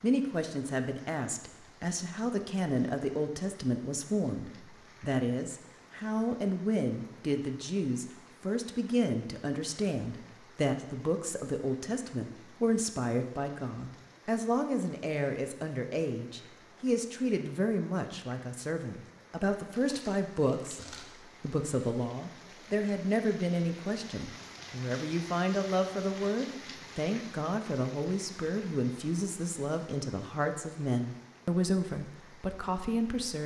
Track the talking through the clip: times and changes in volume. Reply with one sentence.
The talking can be heard from 0.0 to 33.4 s, at a steady volume.